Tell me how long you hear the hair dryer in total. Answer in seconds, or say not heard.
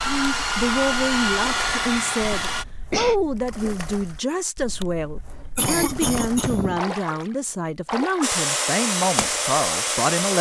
5 s.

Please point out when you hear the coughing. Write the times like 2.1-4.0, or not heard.
2.0-3.1, 5.5-6.8.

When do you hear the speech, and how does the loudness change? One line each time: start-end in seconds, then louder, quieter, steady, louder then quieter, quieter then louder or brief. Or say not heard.
0.0-10.3 steady.